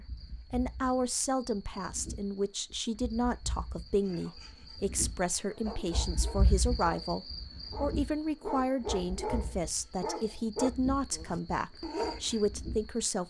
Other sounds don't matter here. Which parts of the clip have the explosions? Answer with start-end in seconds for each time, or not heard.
not heard.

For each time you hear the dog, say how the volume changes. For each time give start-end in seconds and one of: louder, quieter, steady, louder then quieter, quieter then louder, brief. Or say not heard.
4.0-12.4 louder.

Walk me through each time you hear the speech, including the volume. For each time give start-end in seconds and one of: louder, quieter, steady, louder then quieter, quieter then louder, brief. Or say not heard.
0.1-13.2 steady.